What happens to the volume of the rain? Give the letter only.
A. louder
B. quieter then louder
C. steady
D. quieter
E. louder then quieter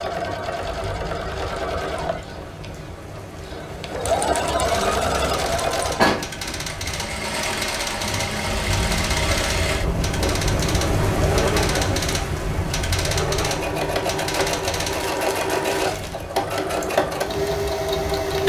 E.